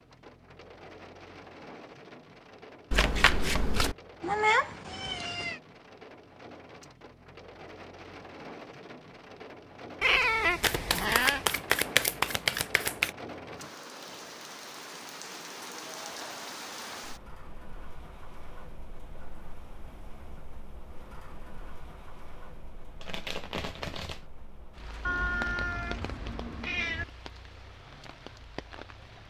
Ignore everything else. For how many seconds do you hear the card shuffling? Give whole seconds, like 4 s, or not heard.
5 s.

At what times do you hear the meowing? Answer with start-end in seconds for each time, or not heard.
4.2-5.6, 10.0-11.4, 25.1-27.1.